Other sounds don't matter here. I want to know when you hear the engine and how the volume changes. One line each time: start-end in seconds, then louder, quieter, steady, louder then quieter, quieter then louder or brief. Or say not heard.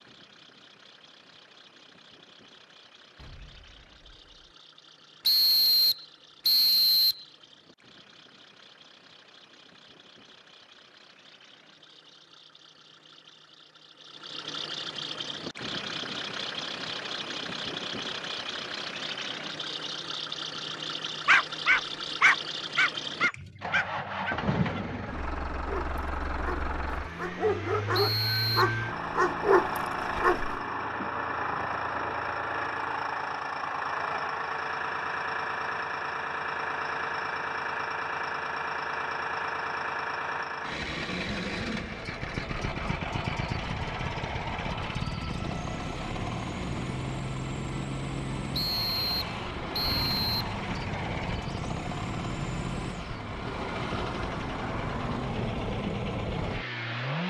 0.0-57.2 louder.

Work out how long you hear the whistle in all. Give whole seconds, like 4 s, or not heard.
5 s.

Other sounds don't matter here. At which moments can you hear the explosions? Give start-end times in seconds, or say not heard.
3.1-4.5.